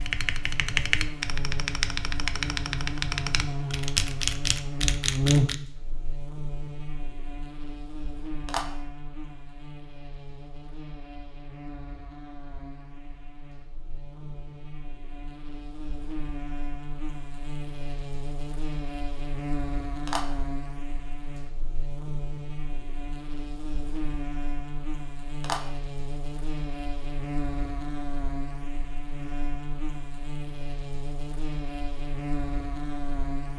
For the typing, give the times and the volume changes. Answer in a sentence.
You can hear the typing from 0.0 to 5.5 s, at a steady volume.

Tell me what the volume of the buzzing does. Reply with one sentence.
The volume of the buzzing goes down, then up.